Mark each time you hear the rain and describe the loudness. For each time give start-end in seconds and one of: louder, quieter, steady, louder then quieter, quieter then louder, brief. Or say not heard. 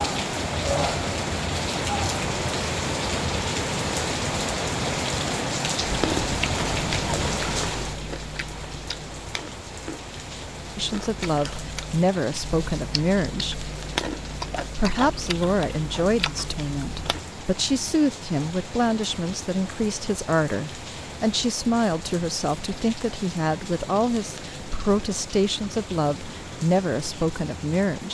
0.0-28.1 quieter.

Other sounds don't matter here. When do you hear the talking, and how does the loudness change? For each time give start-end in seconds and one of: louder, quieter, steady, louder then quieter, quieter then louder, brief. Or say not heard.
10.8-13.7 brief
14.8-28.1 steady.